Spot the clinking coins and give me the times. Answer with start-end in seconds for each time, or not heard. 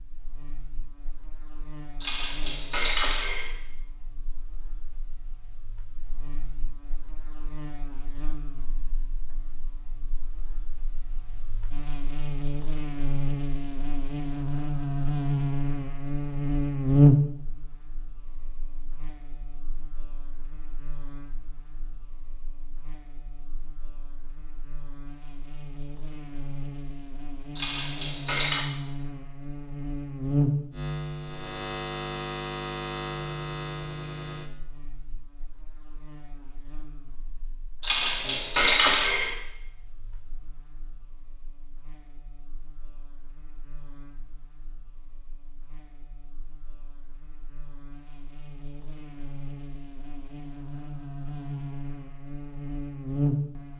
2.0-3.5, 27.6-28.6, 37.8-39.4.